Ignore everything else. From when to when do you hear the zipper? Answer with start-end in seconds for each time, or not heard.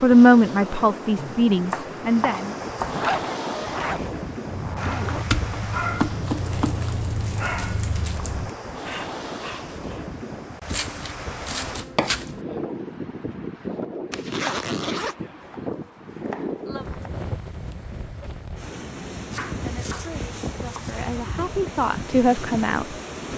2.9-5.2, 14.1-15.2.